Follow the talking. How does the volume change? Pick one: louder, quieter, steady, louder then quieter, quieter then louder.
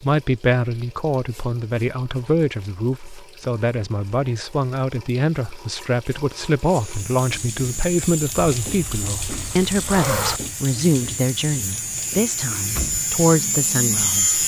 steady.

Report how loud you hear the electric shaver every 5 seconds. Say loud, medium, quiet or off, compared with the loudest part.
off, medium, loud.